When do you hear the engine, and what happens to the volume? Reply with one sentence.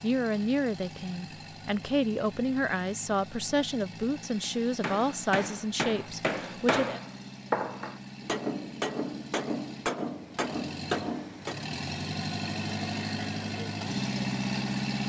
You can hear the engine from 0.0 to 15.0 s, getting louder.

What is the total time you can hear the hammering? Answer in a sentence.
You can hear the hammering for 7 seconds altogether.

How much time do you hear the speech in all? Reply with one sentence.
The speech can be heard for 7 seconds in total.